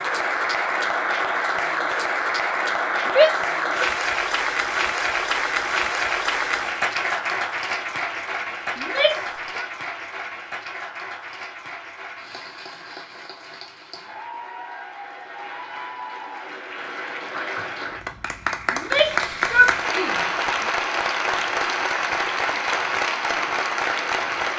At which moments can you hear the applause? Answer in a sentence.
The applause can be heard from 0.0 to 24.5 s.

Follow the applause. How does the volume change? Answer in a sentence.
The loudness of the applause goes down, then up.